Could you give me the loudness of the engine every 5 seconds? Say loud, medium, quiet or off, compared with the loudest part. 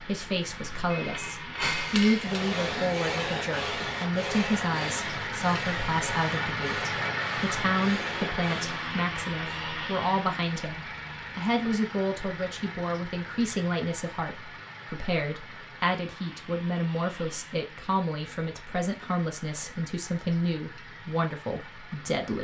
medium, loud, medium, quiet, quiet.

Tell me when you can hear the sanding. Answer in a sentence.
You can hear the sanding from 2.0 to 8.9 s.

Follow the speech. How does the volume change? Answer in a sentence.
The loudness of the speech stays about the same.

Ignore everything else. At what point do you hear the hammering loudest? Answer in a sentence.
The volume of the hammering peaks at 2 seconds.